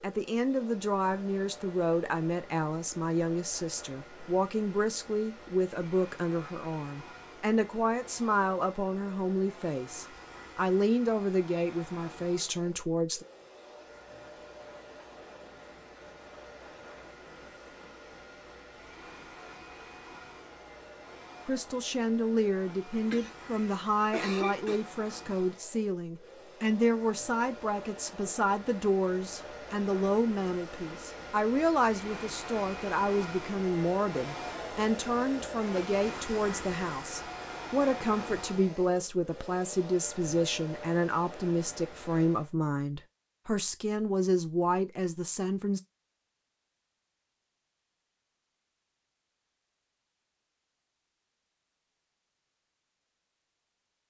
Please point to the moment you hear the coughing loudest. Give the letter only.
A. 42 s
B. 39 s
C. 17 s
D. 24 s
D.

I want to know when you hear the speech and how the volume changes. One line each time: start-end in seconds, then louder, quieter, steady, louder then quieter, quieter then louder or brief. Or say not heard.
0.0-13.2 steady
21.4-45.8 steady.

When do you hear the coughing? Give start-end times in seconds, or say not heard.
23.1-24.8.